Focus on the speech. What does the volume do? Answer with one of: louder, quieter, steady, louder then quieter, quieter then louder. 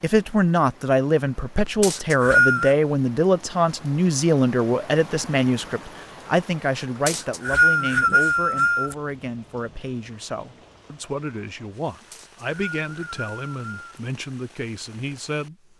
quieter.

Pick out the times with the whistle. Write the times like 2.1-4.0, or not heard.
1.8-2.8, 7.0-8.9, 12.1-14.0.